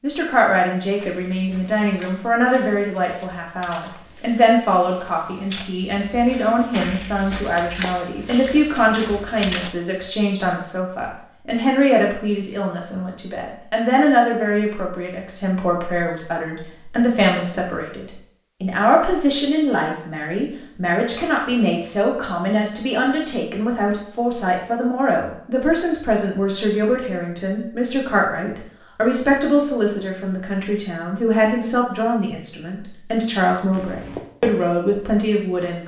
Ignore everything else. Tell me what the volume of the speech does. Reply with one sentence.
The loudness of the speech stays about the same.